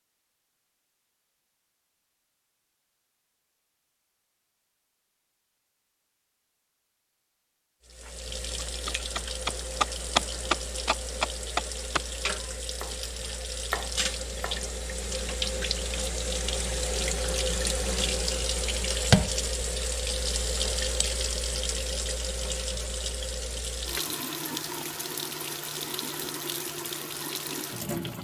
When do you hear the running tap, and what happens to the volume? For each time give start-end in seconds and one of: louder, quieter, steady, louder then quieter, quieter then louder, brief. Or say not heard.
7.8-28.1 louder then quieter.